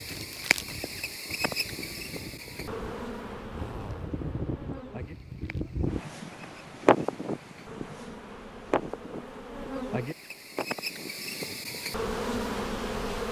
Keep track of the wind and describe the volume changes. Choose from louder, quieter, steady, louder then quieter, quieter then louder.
louder then quieter.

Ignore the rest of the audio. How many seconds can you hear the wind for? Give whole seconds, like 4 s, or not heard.
13 s.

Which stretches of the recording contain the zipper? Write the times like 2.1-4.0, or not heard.
3.5-4.2.